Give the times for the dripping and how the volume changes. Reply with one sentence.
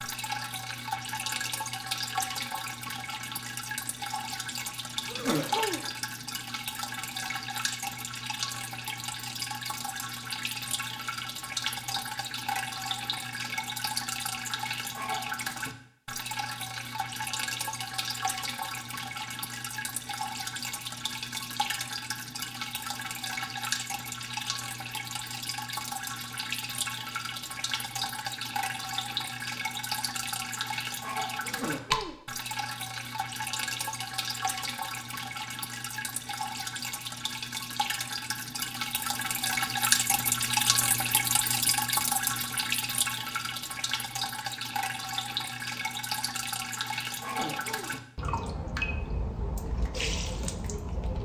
The dripping can be heard from 0.0 to 51.1 s, at a steady volume.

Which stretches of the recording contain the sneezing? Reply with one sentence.
You can hear the sneezing from 5.0 to 5.9 s, from 31.4 to 32.2 s and from 47.2 to 48.0 s.